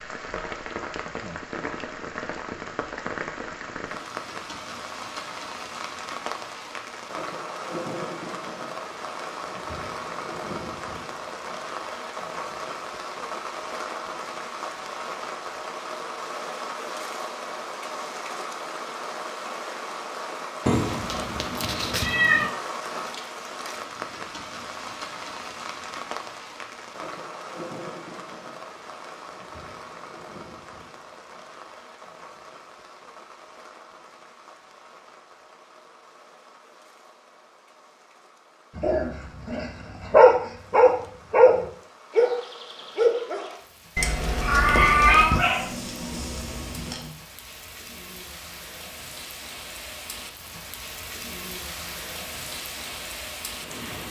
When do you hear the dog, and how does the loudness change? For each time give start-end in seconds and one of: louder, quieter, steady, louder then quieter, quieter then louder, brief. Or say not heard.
38.8-47.1 quieter.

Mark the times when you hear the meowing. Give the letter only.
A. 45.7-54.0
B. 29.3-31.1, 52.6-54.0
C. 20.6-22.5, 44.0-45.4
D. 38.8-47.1
C.